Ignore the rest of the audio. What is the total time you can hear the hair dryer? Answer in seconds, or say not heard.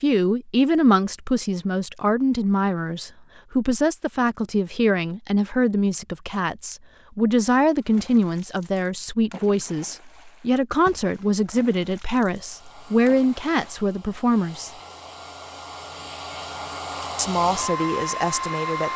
7 s.